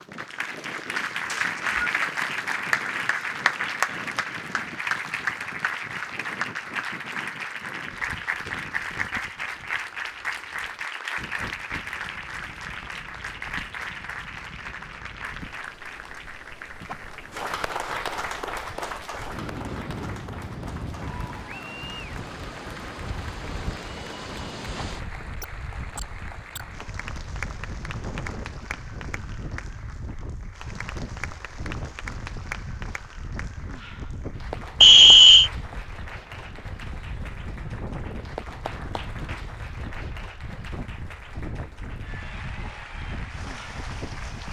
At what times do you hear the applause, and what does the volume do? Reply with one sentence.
You can hear the applause from 0.0 to 44.4 s, getting quieter.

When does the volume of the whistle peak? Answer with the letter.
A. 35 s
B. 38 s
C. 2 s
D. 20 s
A.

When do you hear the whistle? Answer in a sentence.
The whistle can be heard from 1.2 to 1.8 s and from 34.8 to 35.5 s.